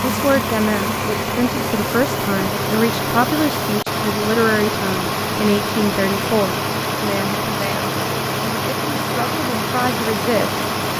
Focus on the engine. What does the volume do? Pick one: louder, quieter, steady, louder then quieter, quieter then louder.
steady.